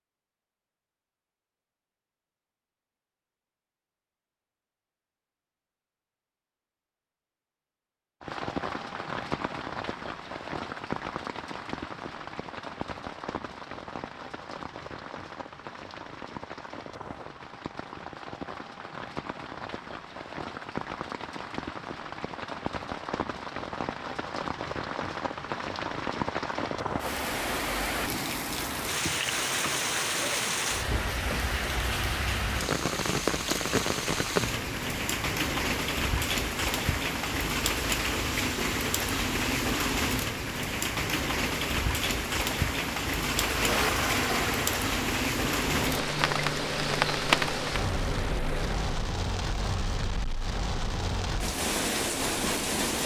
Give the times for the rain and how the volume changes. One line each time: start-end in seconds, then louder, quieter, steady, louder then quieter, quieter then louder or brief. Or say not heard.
8.2-53.0 louder.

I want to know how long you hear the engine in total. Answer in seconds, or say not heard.
6 s.